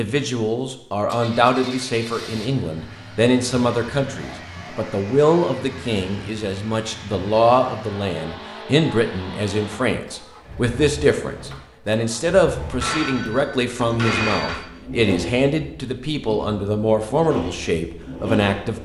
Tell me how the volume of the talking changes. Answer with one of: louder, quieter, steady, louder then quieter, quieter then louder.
steady.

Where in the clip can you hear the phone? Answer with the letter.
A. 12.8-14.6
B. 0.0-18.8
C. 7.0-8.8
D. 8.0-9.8
A.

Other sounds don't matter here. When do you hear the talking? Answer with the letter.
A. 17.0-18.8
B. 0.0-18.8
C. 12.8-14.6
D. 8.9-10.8
B.